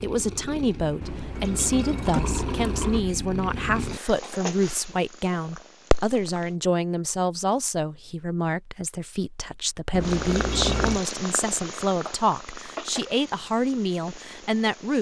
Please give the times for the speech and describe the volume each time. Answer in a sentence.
The speech can be heard from 0.0 to 14.9 s, at a steady volume.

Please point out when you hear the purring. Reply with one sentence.
You can hear the purring from 0.0 to 6.5 s and from 10.0 to 14.9 s.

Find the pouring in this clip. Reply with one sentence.
The pouring can be heard from 1.0 to 3.0 s and from 9.9 to 11.0 s.